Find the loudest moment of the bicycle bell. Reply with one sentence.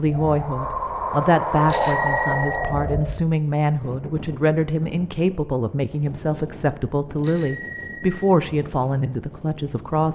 The loudest moment of the bicycle bell is at 2 seconds.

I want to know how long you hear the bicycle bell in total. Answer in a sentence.
You can hear the bicycle bell for 2 seconds altogether.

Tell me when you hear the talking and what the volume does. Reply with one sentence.
The talking can be heard from 0.0 to 10.1 s, at a steady volume.